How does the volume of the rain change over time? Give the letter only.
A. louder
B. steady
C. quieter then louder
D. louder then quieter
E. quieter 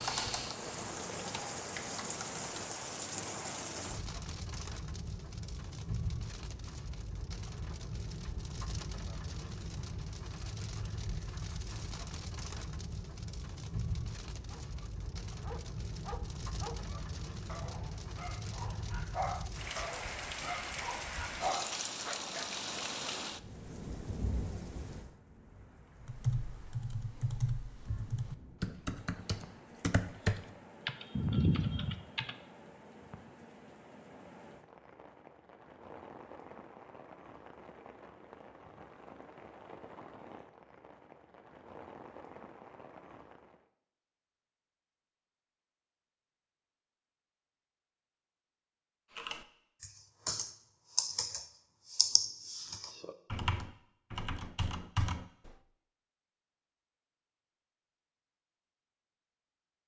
E.